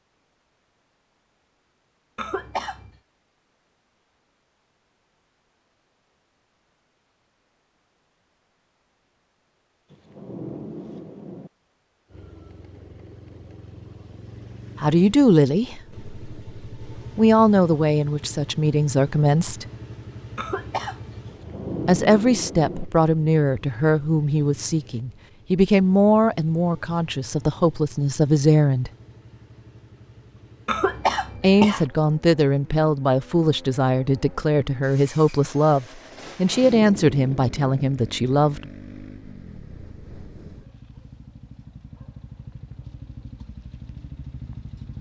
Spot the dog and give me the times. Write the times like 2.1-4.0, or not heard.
not heard.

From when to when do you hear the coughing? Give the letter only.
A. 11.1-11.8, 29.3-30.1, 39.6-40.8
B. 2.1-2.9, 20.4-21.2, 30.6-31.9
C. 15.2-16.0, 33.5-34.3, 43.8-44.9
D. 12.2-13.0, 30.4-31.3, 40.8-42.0
B.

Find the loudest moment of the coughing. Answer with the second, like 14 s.
31 s.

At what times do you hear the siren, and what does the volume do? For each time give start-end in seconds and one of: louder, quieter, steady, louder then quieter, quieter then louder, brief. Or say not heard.
not heard.